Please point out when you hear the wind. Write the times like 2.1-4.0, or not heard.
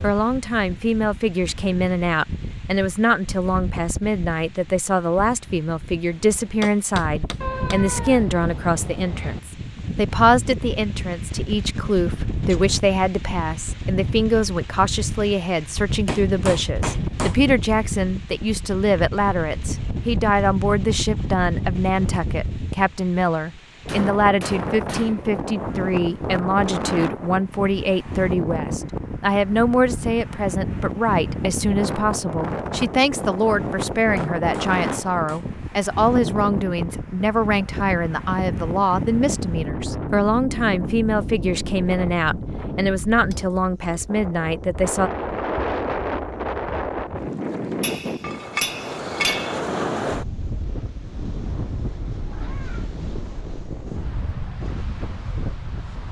0.0-56.0.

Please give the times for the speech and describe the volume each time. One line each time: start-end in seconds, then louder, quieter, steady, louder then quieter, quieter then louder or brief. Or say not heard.
0.0-45.1 steady.